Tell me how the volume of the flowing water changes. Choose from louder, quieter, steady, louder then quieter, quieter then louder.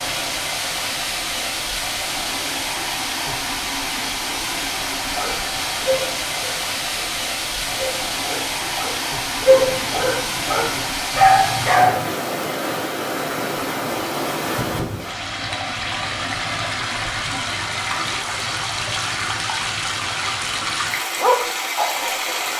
steady.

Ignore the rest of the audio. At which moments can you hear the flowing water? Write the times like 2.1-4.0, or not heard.
0.0-22.5.